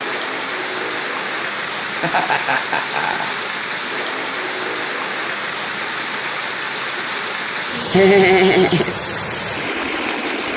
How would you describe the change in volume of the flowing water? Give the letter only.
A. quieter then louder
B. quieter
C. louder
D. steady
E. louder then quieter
D.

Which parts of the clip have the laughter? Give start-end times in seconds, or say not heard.
2.0-3.4, 7.9-8.9.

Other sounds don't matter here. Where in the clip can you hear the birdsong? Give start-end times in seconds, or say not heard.
not heard.